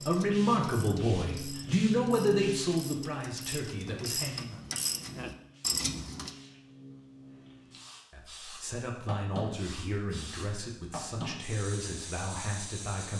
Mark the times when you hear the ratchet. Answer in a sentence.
The ratchet can be heard from 0.0 to 6.3 s.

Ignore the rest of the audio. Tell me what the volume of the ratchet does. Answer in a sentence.
The volume of the ratchet goes up.